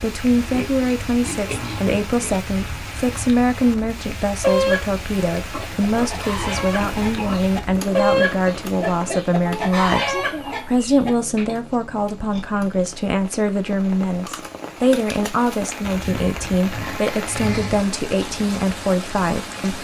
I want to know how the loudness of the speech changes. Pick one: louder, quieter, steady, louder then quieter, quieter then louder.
steady.